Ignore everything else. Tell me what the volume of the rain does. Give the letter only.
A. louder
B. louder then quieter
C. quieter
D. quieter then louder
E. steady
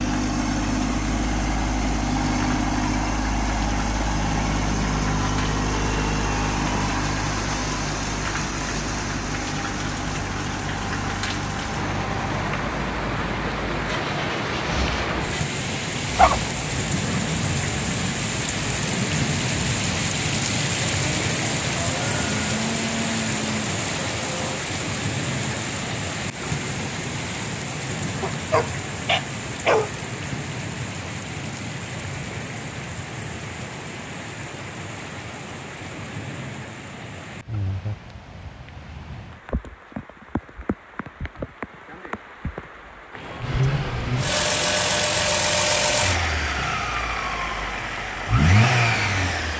B.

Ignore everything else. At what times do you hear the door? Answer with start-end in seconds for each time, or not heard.
not heard.